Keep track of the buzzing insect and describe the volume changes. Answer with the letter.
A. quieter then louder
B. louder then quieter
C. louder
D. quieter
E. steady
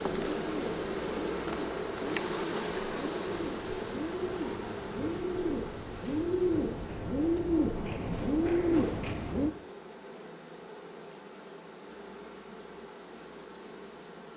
D.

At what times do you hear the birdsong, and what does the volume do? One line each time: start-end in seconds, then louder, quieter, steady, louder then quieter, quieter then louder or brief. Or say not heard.
0.0-9.5 louder.